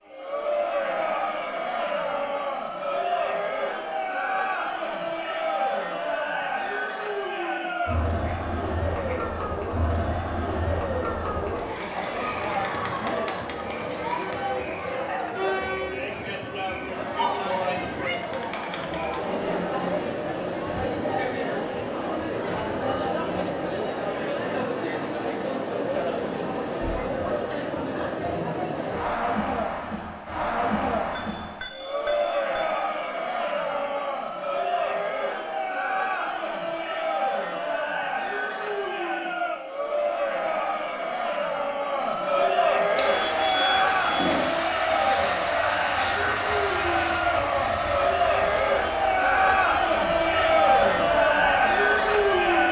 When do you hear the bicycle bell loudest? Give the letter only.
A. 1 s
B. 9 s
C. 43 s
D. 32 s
C.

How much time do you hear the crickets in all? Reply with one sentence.
You can't hear the crickets here.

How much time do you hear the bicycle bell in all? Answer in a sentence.
The bicycle bell can be heard for 4 seconds in total.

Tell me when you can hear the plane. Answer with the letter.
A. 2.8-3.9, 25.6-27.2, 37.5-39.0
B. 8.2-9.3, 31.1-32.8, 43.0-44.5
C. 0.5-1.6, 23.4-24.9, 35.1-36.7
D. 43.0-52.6
D.